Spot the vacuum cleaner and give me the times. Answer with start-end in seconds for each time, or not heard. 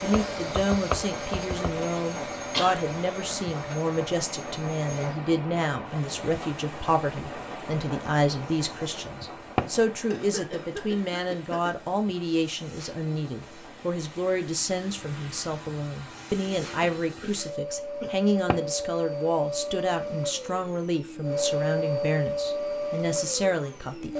0.0-24.1.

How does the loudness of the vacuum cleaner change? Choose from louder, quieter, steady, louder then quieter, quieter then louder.
quieter then louder.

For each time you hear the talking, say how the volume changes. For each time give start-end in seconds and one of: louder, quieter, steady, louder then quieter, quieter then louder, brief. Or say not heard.
0.0-24.1 steady.